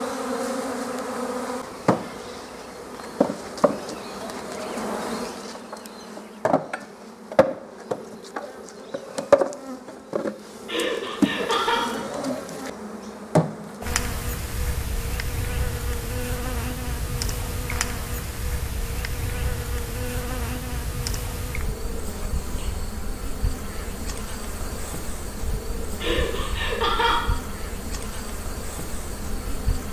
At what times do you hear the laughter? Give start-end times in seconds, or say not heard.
10.7-11.8, 26.0-27.2.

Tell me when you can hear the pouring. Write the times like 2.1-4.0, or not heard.
not heard.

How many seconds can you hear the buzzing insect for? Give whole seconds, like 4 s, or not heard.
30 s.